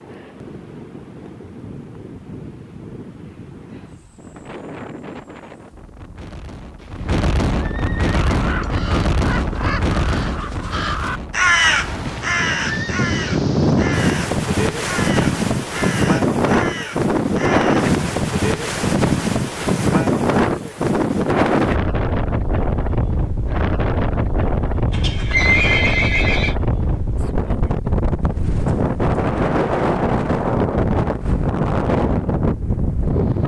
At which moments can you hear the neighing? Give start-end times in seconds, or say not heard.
6.8-8.8, 11.8-12.9, 24.9-26.6.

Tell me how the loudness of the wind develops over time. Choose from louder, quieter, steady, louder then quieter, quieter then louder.
louder.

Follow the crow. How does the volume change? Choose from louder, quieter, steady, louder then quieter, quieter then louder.
louder then quieter.